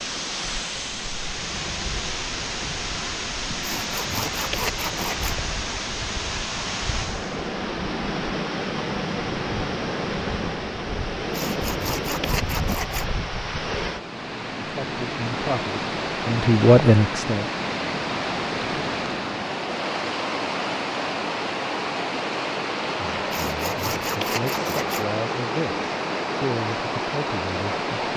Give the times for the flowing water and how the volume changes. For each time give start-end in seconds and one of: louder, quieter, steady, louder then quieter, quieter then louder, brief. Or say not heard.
0.0-28.1 steady.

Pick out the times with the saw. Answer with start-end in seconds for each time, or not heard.
3.6-5.4, 11.3-13.1, 23.3-25.1.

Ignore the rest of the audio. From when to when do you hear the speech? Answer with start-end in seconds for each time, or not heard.
14.6-17.5, 22.9-28.1.